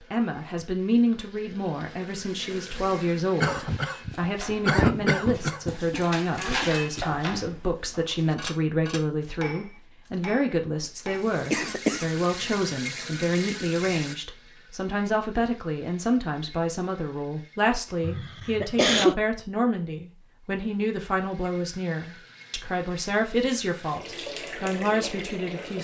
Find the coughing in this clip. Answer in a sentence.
The coughing can be heard from 3.4 to 5.8 s, from 11.5 to 12.1 s and from 18.0 to 19.1 s.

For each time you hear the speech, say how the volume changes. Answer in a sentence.
The speech can be heard from 0.1 to 25.7 s, at a steady volume.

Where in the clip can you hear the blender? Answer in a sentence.
The blender can't be heard in this clip.